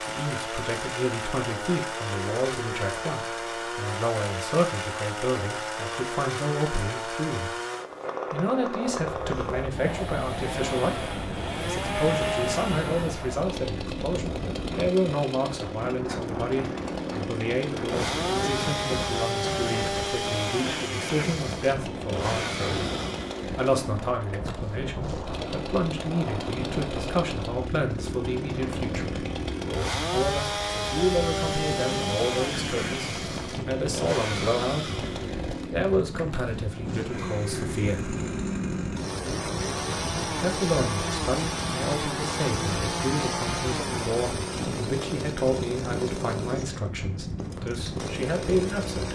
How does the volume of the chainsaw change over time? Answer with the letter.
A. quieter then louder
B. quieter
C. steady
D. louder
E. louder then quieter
C.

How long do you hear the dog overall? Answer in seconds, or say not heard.
not heard.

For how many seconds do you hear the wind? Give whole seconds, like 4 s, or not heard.
40 s.